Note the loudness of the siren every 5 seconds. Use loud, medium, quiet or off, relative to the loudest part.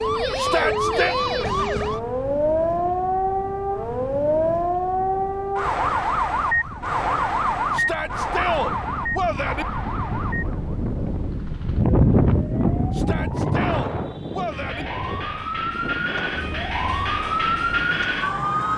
loud, loud, quiet, loud.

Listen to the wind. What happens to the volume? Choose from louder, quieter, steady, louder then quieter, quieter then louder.
louder then quieter.